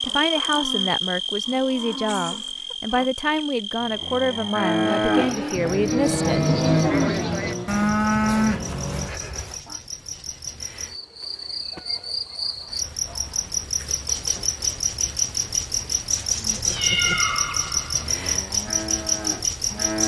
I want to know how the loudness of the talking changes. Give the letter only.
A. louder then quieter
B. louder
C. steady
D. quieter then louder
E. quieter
C.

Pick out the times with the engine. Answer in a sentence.
You can hear the engine from 4.8 to 9.2 s.